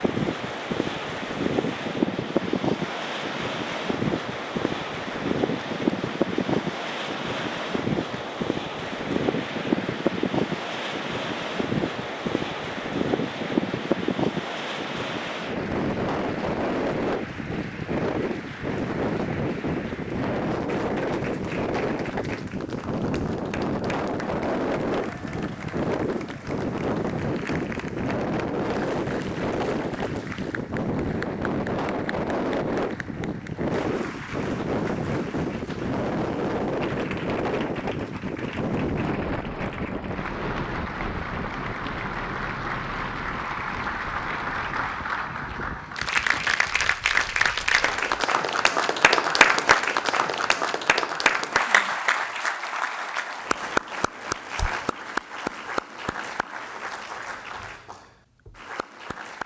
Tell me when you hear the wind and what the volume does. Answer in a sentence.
The wind can be heard from 0.0 to 48.0 s, getting quieter.